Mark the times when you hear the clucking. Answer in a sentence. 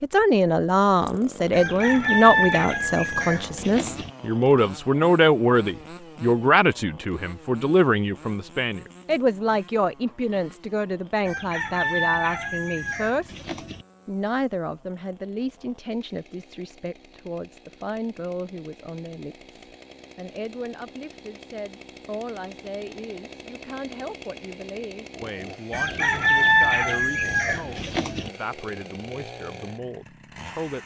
The clucking can be heard from 1.5 to 4.1 s, from 11.2 to 13.8 s and from 25.7 to 28.3 s.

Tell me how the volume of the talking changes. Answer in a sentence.
The loudness of the talking goes down.